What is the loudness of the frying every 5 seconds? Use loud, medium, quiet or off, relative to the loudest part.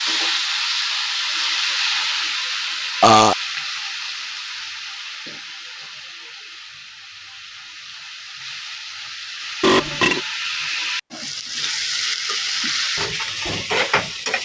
loud, medium, loud.